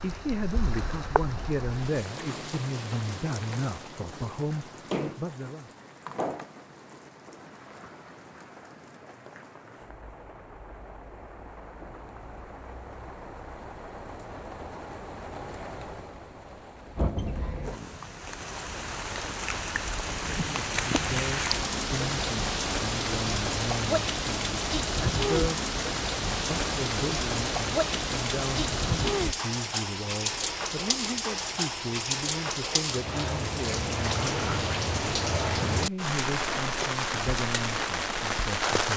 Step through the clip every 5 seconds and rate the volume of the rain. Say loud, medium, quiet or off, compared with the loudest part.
medium, quiet, quiet, medium, loud, loud, loud, loud.